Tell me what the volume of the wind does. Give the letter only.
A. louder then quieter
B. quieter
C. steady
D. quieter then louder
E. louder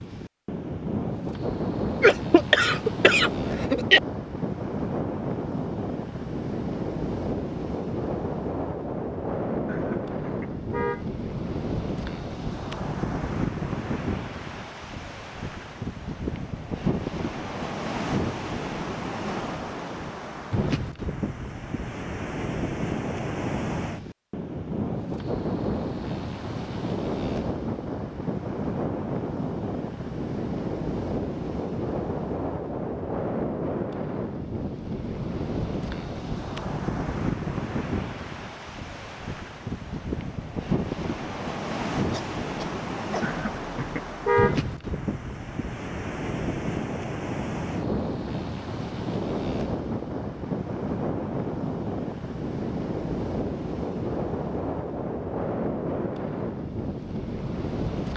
C.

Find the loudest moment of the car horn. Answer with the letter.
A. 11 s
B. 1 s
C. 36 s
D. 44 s
D.